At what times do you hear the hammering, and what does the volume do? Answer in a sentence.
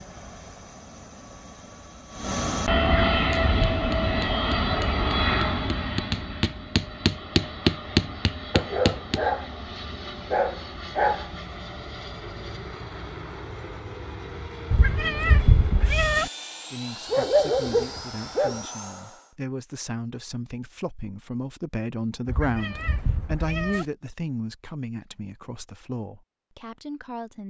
The hammering can be heard from 3.3 to 9.2 s, getting louder.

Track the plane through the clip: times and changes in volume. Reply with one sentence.
The plane can be heard from 0.0 to 19.4 s, getting quieter.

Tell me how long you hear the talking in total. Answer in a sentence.
You can hear the talking for 11 seconds altogether.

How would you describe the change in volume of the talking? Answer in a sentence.
The loudness of the talking goes up, then down.